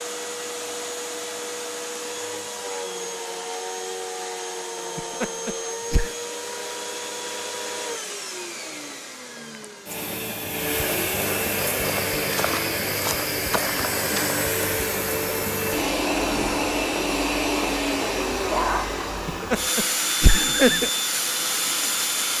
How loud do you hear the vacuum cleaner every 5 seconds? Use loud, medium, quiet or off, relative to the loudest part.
medium, medium, loud, loud, loud.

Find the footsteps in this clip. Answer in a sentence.
You can hear the footsteps from 11.7 to 14.3 s.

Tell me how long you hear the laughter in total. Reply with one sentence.
The laughter can be heard for 3 seconds in total.